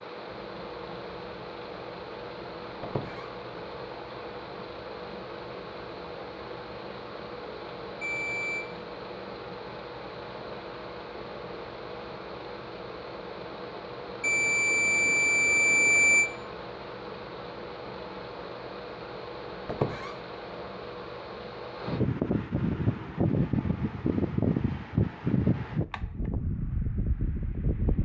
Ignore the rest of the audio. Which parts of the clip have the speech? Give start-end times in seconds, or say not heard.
not heard.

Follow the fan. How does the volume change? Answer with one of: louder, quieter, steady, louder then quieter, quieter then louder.
louder.